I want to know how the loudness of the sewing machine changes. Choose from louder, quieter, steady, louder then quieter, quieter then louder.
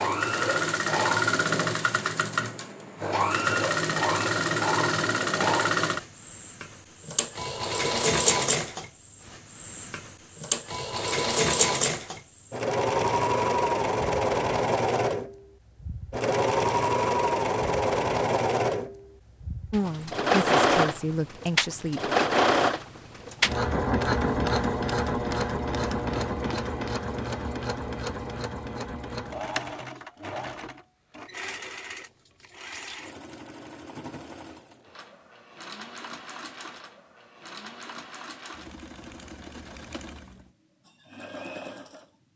quieter.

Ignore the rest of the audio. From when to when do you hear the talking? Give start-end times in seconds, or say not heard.
19.7-22.0.